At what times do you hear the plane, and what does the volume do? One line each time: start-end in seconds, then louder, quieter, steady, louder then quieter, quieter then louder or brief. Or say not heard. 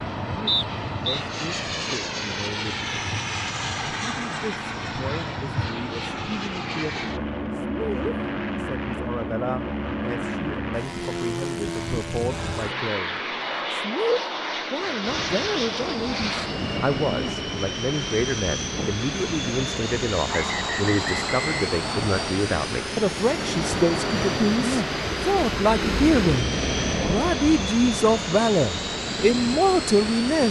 0.0-30.4 steady.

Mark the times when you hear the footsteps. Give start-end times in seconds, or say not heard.
not heard.